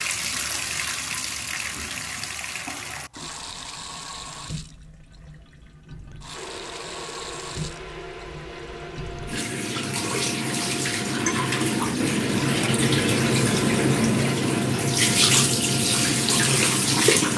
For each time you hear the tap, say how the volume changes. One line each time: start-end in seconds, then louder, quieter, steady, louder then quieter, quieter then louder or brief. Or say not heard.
0.0-17.3 quieter then louder.